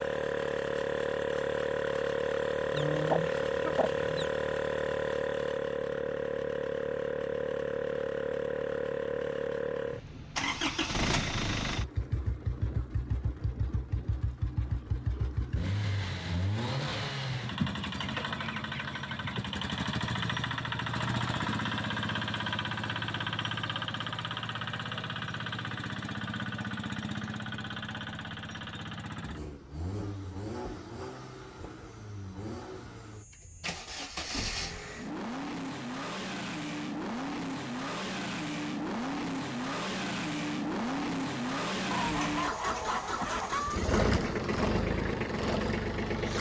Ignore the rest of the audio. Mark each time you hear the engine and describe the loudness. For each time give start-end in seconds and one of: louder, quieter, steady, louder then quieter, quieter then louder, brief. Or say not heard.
0.0-46.3 quieter then louder.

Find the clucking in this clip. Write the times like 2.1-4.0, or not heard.
2.7-4.3, 17.6-19.4, 41.9-43.9.